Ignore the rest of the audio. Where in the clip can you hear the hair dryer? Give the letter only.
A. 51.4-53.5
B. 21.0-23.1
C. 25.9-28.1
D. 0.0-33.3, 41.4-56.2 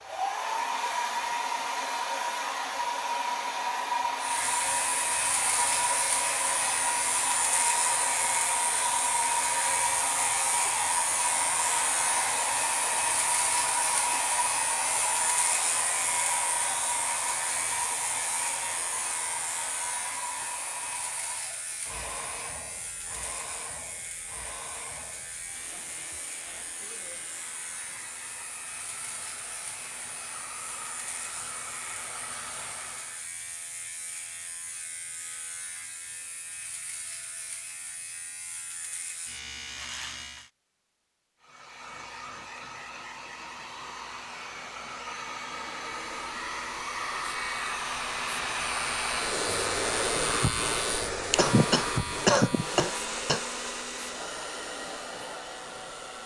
D.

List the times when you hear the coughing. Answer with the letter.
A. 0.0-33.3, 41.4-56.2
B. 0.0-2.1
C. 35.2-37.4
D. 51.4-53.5
D.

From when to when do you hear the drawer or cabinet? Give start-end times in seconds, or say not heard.
not heard.